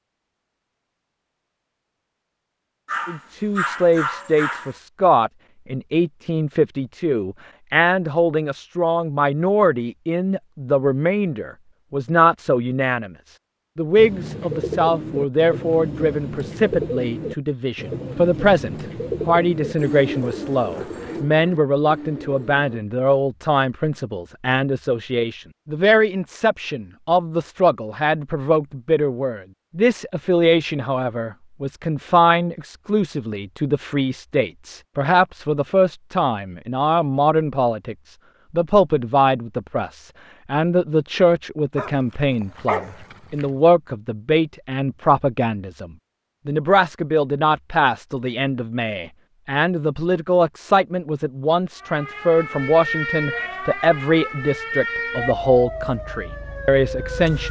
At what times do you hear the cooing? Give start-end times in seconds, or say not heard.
13.9-22.8.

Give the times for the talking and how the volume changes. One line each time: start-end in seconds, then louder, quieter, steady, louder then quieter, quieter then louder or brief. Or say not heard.
3.0-57.4 steady.